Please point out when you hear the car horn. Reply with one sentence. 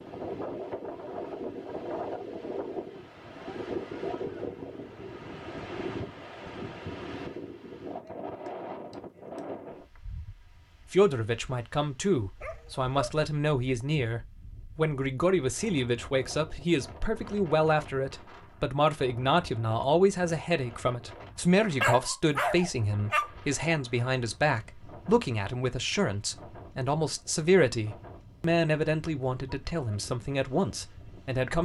You can't hear the car horn here.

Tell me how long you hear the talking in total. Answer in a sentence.
The talking can be heard for 21 seconds in total.